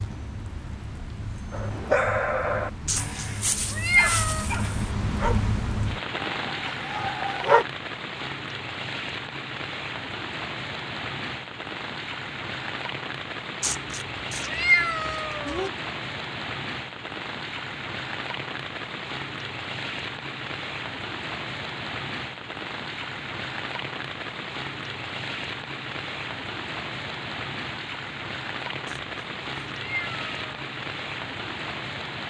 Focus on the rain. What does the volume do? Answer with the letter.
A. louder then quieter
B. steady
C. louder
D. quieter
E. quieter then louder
B.